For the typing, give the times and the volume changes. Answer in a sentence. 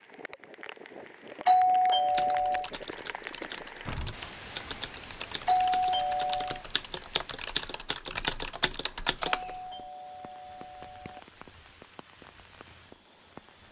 You can hear the typing from 2.0 to 9.6 s, getting louder.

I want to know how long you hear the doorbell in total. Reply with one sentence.
You can hear the doorbell for 4 seconds altogether.